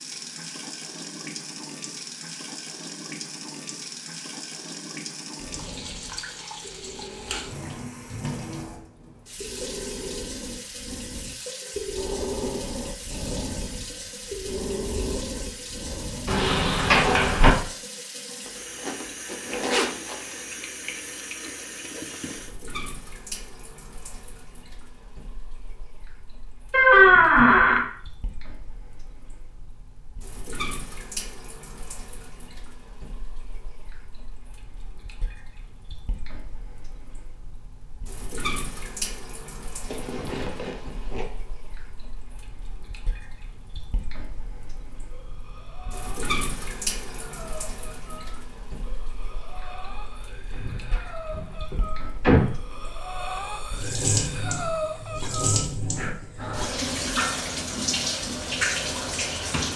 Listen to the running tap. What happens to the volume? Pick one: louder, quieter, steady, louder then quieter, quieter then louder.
quieter then louder.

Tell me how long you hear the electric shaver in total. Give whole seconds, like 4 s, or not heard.
not heard.